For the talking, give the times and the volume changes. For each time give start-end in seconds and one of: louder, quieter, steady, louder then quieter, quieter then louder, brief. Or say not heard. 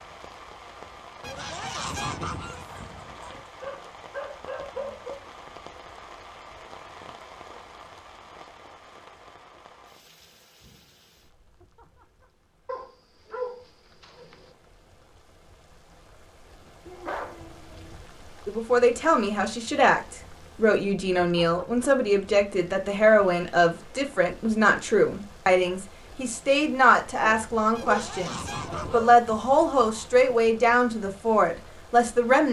18.4-32.4 steady.